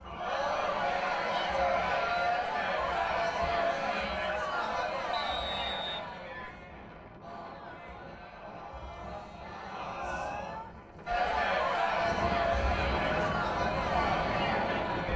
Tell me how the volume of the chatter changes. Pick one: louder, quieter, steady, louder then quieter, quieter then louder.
quieter then louder.